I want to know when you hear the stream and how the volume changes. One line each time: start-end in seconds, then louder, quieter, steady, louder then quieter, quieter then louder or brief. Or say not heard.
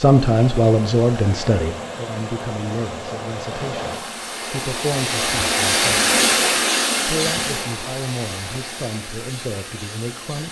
0.0-10.4 louder then quieter.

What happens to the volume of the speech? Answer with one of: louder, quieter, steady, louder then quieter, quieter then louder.
quieter.